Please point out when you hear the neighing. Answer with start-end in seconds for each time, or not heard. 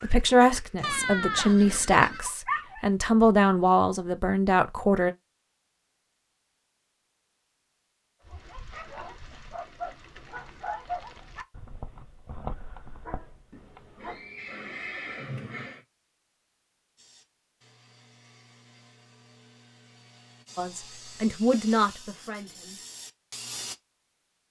0.8-2.2, 13.5-15.8.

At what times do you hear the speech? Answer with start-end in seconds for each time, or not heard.
0.0-5.2, 20.6-22.8.